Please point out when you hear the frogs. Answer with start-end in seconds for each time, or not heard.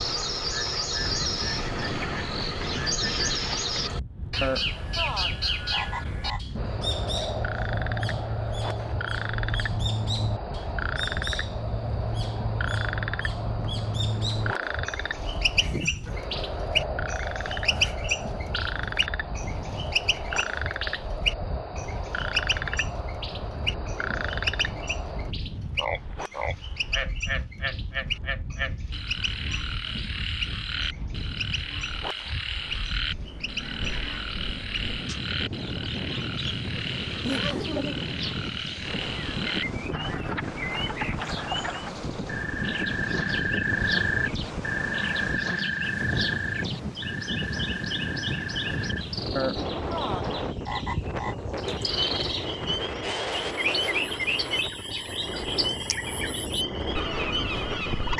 0.0-58.1.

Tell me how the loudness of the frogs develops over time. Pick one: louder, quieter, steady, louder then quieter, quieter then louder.
steady.